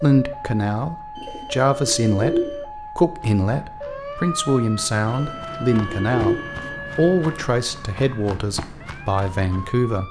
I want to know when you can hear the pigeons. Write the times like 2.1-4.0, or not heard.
1.1-2.6, 5.0-6.8.